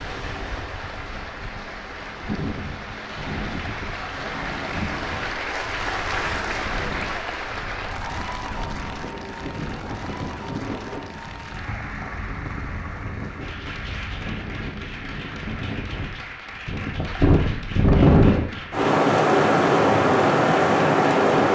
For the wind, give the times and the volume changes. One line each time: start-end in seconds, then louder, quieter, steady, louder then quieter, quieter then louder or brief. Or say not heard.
0.0-21.4 louder.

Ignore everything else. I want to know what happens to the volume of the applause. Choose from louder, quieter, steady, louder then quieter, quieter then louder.
louder then quieter.